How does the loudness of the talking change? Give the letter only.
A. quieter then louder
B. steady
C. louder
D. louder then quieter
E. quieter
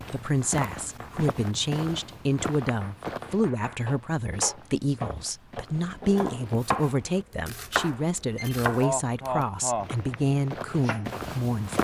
B.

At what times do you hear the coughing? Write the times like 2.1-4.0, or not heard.
8.8-9.9.